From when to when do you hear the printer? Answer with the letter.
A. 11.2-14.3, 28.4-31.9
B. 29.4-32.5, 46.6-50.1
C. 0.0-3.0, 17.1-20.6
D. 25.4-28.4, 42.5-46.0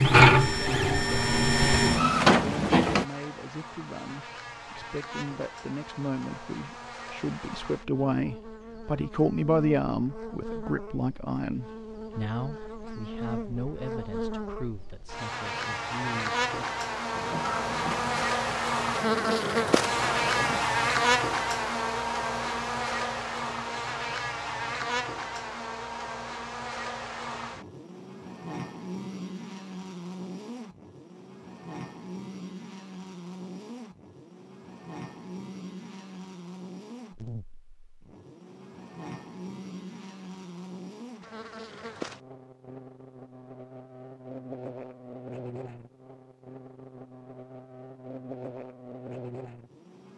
C.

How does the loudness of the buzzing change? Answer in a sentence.
The loudness of the buzzing goes up, then down.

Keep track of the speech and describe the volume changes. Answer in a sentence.
The volume of the speech goes up, then down.